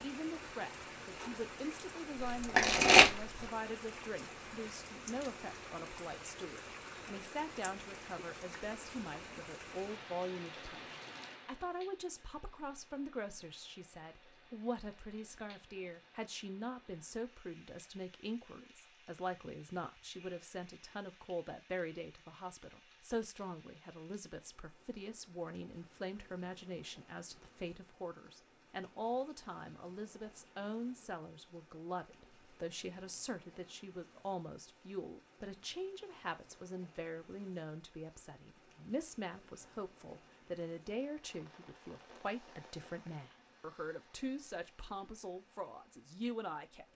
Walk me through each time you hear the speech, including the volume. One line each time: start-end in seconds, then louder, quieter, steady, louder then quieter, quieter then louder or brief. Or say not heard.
0.0-46.9 steady.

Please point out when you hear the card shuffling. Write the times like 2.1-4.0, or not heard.
2.2-3.5.